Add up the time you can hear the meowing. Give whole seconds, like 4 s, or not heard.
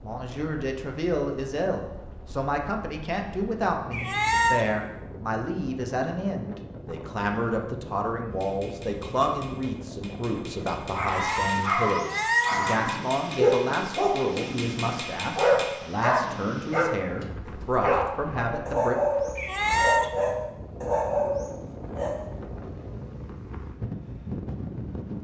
3 s.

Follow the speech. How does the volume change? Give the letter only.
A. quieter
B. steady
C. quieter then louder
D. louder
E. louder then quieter
B.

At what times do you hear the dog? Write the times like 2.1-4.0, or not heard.
10.9-22.2.